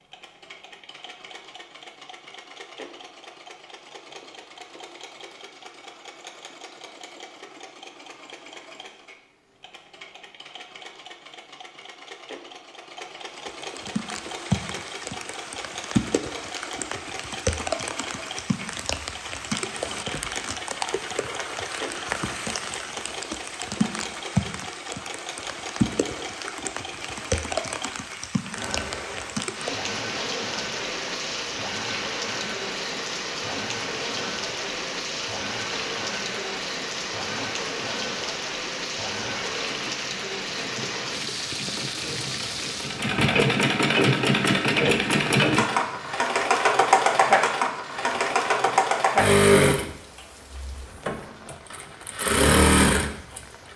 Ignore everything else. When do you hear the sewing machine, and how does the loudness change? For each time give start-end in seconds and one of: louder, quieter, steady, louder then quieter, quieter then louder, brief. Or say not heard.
0.0-53.7 louder.